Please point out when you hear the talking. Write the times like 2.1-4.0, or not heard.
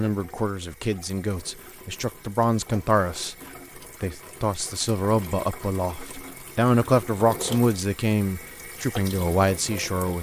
0.0-3.4, 4.0-10.1.